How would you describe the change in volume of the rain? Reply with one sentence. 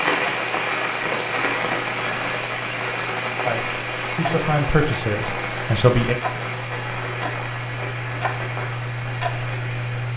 The volume of the rain goes down.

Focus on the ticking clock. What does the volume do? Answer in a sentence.
The volume of the ticking clock goes up.